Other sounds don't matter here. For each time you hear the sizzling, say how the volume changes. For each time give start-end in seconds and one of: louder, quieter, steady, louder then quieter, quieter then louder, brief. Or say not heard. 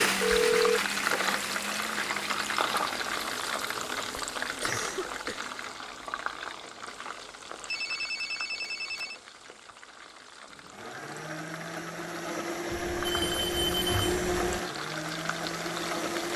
0.0-16.3 quieter then louder.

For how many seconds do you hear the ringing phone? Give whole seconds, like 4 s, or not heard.
4 s.